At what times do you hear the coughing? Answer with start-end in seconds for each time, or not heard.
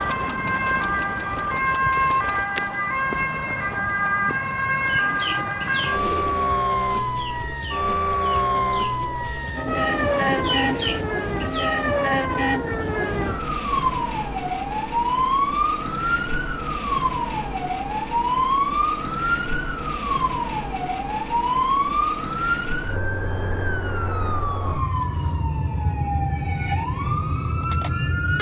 not heard.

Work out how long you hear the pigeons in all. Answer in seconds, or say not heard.
7 s.